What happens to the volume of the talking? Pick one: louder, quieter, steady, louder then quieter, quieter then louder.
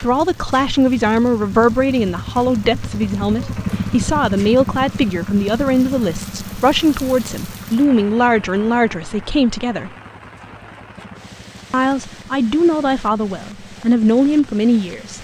steady.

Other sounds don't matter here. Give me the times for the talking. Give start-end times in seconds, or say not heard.
0.0-9.9, 11.7-15.1.